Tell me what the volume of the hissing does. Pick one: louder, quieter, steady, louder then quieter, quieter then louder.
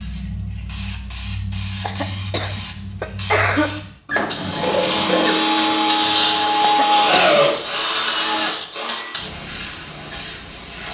louder then quieter.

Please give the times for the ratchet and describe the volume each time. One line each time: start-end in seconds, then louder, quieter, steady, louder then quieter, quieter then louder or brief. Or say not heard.
not heard.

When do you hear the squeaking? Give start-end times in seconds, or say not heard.
4.0-5.4.